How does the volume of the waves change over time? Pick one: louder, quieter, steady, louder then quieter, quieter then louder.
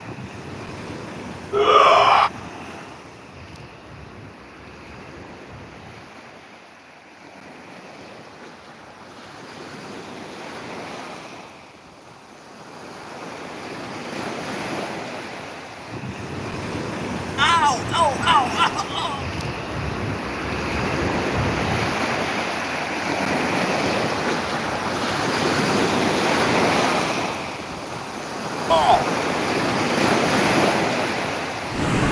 louder.